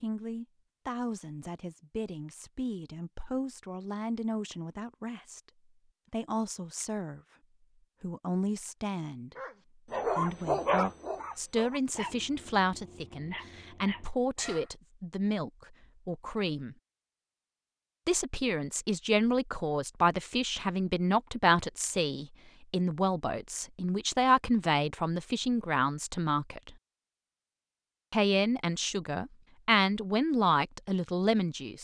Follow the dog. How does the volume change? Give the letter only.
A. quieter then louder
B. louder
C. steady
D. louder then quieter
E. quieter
E.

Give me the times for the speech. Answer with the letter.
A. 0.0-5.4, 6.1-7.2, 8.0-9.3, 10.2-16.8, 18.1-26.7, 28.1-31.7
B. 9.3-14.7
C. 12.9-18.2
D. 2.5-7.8
A.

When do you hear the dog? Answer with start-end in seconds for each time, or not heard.
9.3-14.7.